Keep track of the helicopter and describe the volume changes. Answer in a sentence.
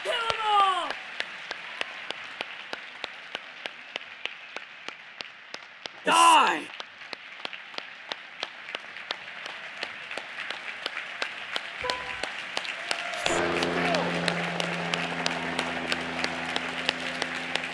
The volume of the helicopter goes down.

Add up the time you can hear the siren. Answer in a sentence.
You can't hear the siren here.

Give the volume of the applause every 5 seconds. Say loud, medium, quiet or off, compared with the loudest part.
medium, medium, loud, loud.